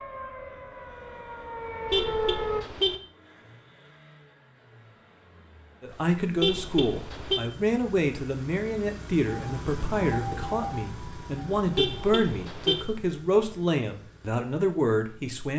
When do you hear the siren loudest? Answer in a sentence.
The volume of the siren peaks at 2 seconds.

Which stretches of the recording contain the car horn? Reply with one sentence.
The car horn can be heard from 1.9 to 3.0 s, from 6.4 to 7.4 s and from 11.8 to 12.8 s.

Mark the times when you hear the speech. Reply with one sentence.
You can hear the speech from 5.8 to 15.5 s.